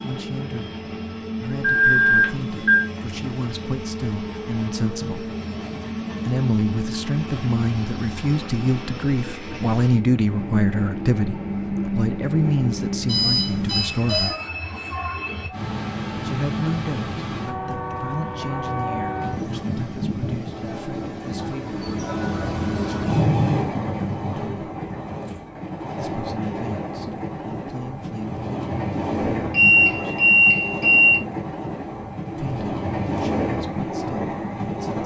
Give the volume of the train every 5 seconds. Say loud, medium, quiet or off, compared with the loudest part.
medium, medium, loud, loud, loud, loud, loud.